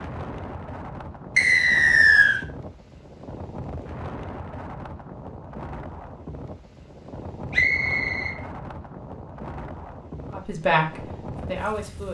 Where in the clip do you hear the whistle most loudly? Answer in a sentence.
The volume of the whistle peaks at 2 seconds.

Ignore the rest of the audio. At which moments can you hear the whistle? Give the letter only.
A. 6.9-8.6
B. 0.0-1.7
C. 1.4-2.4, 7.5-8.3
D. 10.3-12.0
C.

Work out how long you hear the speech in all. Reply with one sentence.
You can hear the speech for 2 seconds altogether.